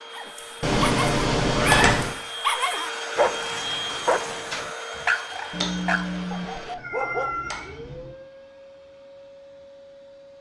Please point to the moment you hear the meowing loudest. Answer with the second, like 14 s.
2 s.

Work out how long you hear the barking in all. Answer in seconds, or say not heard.
7 s.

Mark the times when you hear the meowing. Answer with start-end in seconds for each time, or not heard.
0.6-2.1, 5.5-8.2.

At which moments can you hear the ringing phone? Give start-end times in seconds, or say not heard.
not heard.